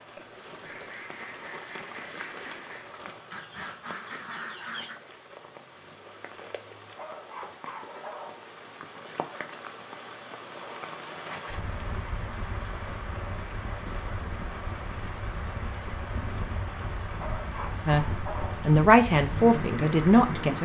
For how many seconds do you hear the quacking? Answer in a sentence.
The quacking can be heard for 5 seconds in total.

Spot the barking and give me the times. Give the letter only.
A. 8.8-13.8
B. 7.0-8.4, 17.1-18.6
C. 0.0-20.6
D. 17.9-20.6
B.